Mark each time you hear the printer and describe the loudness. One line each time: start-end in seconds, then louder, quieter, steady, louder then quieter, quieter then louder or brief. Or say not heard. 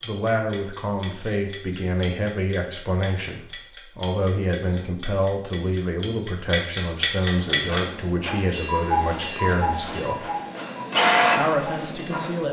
7.5-12.4 louder.